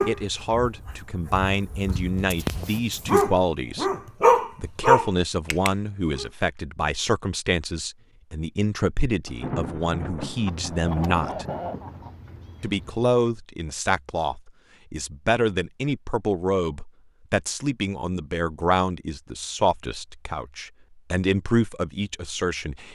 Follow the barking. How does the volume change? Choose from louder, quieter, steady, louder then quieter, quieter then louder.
louder.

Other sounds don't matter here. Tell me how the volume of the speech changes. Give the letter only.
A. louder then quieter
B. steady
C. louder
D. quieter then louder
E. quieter
B.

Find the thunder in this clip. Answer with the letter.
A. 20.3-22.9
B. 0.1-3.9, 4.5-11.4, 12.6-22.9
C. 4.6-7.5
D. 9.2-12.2
D.